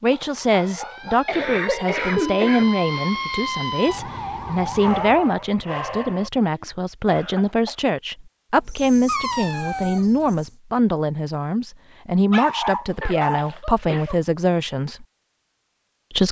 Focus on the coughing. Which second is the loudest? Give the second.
2 s.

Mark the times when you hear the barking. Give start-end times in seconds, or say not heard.
0.1-2.1, 4.8-6.3, 8.6-10.4, 12.3-14.2.